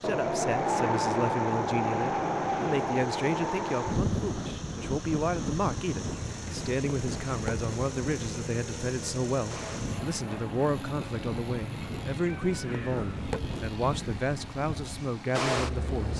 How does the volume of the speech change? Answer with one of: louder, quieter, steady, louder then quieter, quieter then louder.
steady.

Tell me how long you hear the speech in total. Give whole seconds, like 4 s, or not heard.
16 s.